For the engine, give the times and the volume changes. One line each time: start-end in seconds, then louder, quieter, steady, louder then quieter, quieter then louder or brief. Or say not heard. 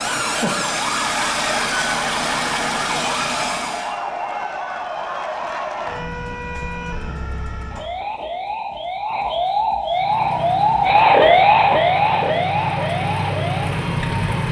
0.0-4.0 steady
9.8-14.4 louder.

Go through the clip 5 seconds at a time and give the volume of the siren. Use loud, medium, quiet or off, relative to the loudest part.
medium, medium, loud.